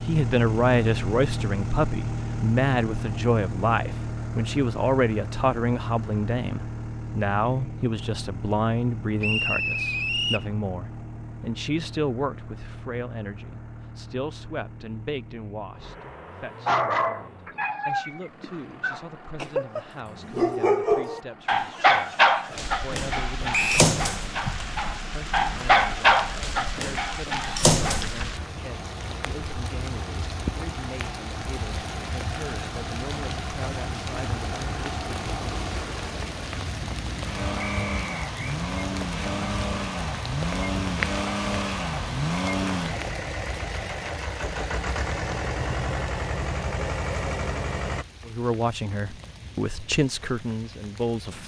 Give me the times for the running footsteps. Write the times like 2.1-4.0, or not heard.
not heard.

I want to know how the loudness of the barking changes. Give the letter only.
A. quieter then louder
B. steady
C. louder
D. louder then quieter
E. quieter
C.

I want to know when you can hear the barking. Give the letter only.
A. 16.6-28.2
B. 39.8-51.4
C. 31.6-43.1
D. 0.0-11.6
A.